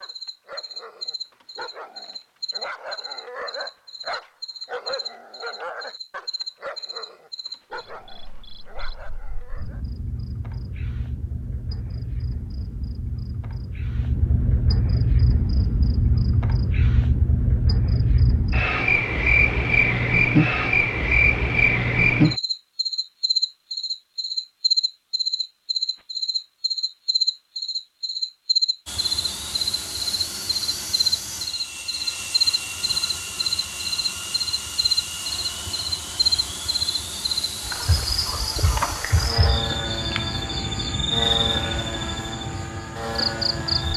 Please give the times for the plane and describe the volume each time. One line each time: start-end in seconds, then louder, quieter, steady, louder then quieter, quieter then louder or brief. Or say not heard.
28.9-43.9 steady.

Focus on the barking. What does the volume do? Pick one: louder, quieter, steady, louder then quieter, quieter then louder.
louder then quieter.